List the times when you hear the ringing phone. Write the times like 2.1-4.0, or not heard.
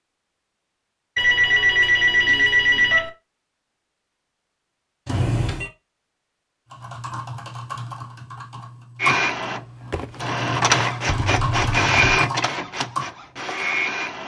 1.1-3.1, 5.0-5.7, 11.1-12.2.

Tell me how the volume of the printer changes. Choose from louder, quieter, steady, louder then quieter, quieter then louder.
louder then quieter.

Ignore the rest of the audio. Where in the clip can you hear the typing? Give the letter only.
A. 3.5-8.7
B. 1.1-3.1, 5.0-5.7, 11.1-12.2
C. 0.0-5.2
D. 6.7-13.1
D.